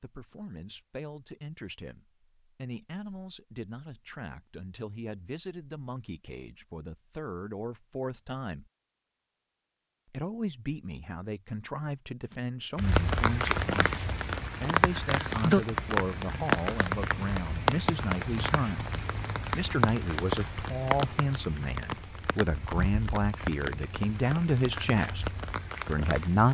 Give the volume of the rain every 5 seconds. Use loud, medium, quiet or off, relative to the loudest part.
off, off, loud, loud, medium, medium.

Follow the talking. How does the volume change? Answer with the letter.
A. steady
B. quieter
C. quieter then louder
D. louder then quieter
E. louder
E.